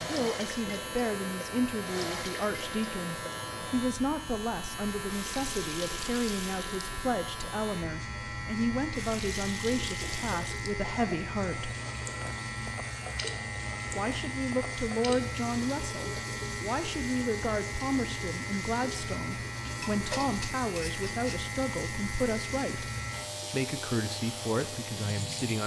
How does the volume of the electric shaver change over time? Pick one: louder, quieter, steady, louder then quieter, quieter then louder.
steady.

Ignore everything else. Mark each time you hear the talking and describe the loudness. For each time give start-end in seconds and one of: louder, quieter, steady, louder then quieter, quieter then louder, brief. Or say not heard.
0.0-11.8 steady
13.8-22.9 steady
23.5-25.6 brief.